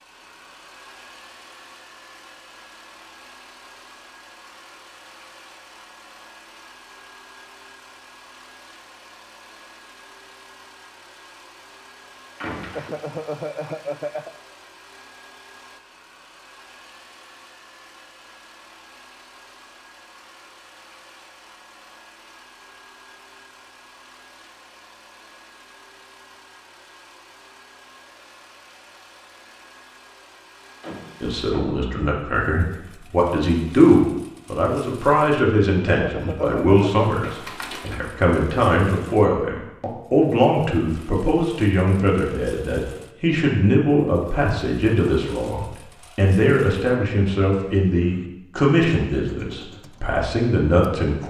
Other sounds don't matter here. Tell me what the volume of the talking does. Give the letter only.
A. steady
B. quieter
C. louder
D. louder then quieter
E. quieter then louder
A.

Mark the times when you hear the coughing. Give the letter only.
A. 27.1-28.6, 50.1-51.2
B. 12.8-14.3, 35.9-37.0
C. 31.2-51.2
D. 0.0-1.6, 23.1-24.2
B.